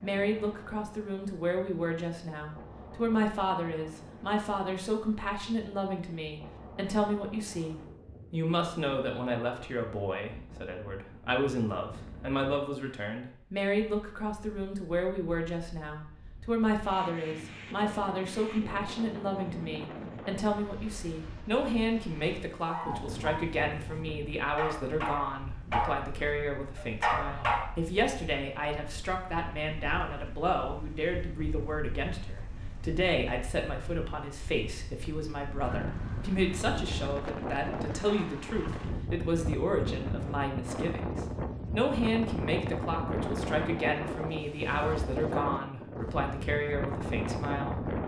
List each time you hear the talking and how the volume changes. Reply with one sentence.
The talking can be heard from 0.0 to 47.9 s, at a steady volume.